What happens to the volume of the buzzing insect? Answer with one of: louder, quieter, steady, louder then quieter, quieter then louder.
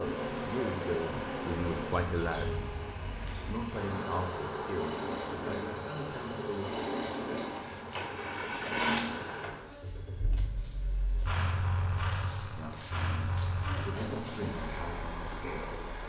quieter then louder.